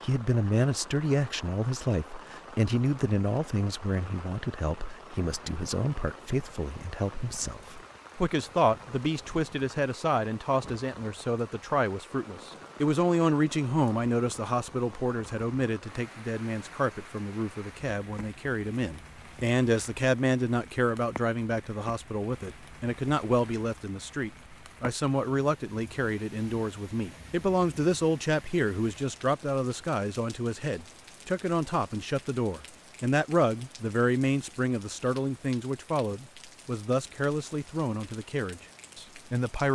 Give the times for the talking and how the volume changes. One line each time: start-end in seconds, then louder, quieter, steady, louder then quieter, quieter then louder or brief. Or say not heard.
0.0-39.7 steady.